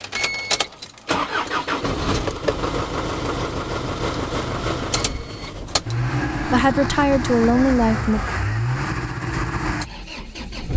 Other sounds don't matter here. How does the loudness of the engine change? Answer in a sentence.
The loudness of the engine stays about the same.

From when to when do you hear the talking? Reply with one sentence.
You can hear the talking from 6.5 to 8.2 s.